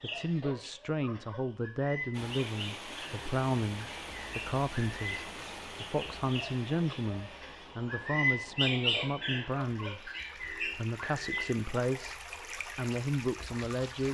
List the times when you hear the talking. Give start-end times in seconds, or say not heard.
0.0-14.0.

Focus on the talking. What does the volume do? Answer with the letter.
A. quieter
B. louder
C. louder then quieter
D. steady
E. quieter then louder
D.